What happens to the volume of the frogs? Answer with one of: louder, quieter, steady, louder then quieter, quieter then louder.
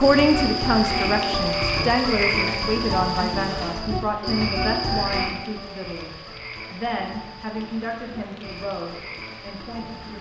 quieter.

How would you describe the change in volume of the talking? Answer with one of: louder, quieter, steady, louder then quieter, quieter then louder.
quieter.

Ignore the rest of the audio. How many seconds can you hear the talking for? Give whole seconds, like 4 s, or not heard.
10 s.